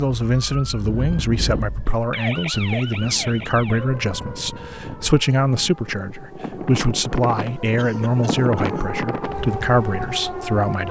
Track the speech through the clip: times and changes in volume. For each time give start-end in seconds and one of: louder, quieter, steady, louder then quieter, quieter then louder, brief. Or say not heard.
0.0-10.8 steady.